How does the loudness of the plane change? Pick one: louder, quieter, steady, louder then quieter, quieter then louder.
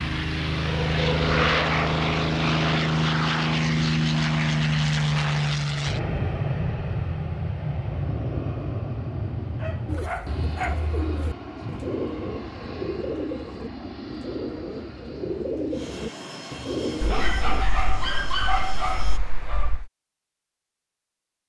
quieter.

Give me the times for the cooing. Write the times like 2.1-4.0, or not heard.
9.8-17.6.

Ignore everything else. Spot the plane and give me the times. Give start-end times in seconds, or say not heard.
0.0-19.2.